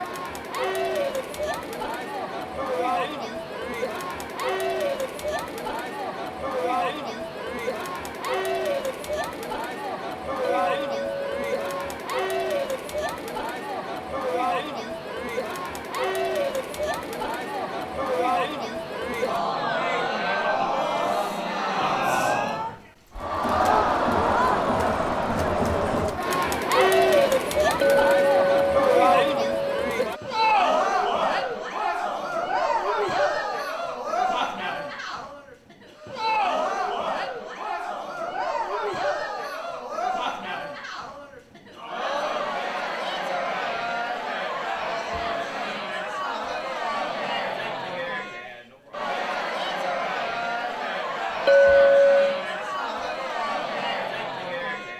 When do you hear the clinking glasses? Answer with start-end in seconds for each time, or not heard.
10.4-11.9, 27.8-29.8, 51.5-52.5.